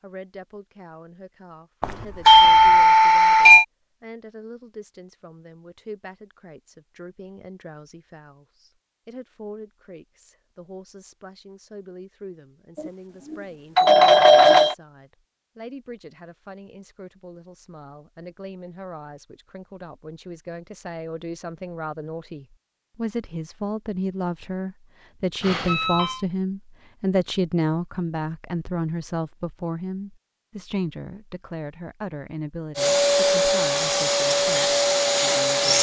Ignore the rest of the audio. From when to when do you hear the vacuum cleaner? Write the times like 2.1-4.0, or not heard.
32.8-35.7.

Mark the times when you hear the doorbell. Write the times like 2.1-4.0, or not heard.
1.8-3.6, 12.8-14.8, 25.4-26.2.